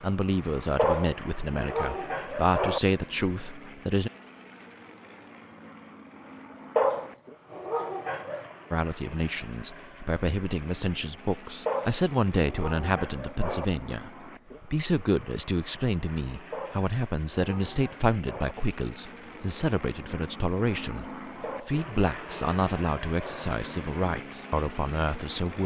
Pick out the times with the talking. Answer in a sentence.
You can hear the talking from 0.0 to 4.1 s and from 8.7 to 25.6 s.